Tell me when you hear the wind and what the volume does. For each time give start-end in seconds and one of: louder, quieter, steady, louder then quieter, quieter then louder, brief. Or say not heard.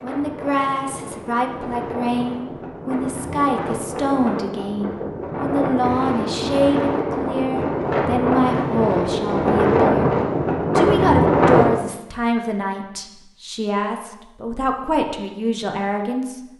0.0-11.8 louder.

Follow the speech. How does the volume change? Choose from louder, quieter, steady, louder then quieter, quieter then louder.
steady.